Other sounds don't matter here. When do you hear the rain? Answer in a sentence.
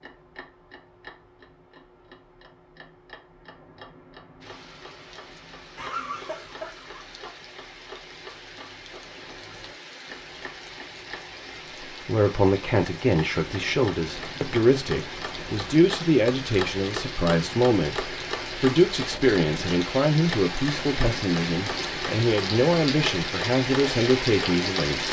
You can hear the rain from 4.4 to 25.0 s.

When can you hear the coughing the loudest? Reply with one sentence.
The volume of the coughing peaks at 6 seconds.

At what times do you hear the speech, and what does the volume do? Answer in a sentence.
You can hear the speech from 11.9 to 25.0 s, at a steady volume.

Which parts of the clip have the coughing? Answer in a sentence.
The coughing can be heard from 5.8 to 7.2 s.